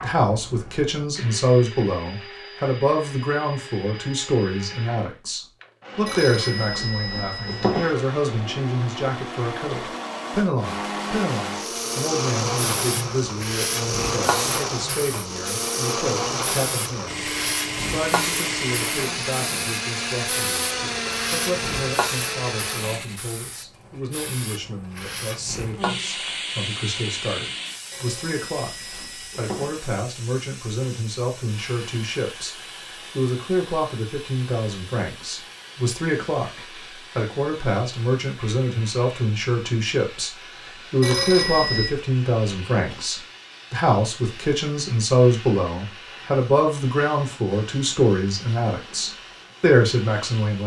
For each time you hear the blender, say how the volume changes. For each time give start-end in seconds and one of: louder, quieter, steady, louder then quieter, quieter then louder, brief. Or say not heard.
0.0-23.2 louder.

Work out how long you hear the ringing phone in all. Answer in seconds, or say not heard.
5 s.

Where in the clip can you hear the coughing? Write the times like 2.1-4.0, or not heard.
not heard.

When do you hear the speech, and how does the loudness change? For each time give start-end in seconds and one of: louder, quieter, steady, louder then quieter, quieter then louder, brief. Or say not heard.
0.0-50.6 quieter then louder.